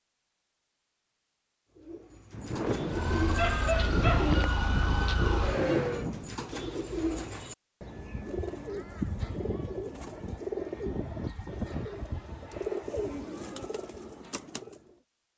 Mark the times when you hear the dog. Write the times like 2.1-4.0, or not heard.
3.3-5.2.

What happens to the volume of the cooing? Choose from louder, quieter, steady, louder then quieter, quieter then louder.
steady.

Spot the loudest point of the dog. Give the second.
4 s.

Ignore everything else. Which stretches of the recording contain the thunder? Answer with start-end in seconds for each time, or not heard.
2.3-6.4.